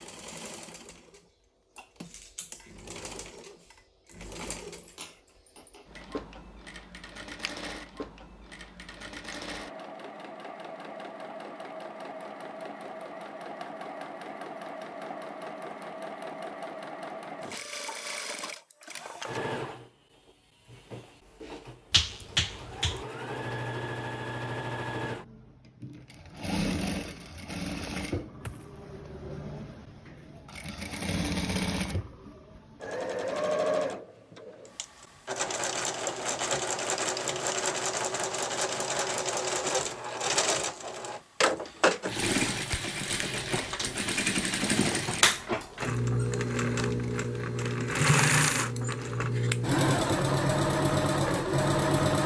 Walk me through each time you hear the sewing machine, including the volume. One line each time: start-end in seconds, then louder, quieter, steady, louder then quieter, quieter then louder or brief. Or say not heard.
0.0-52.2 louder.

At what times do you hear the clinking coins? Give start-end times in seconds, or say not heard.
28.4-28.9.